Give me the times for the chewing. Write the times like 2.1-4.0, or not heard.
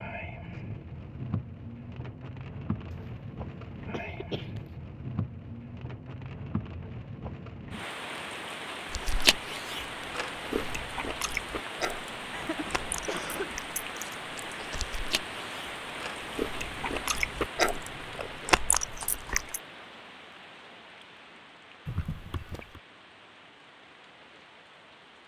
8.9-19.6.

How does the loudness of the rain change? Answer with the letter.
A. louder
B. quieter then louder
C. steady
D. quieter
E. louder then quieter
D.